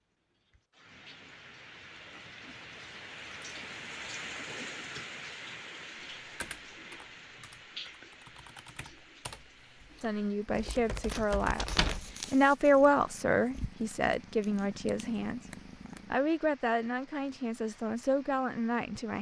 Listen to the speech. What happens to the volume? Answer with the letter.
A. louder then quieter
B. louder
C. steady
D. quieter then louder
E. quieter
A.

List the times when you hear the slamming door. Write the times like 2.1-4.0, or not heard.
11.6-12.1.